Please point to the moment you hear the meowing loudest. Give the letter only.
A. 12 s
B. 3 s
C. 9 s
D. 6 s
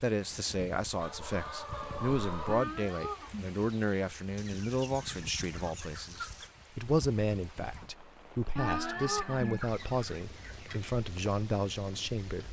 C.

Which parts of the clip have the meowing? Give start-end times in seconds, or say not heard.
2.5-4.0, 8.6-9.9.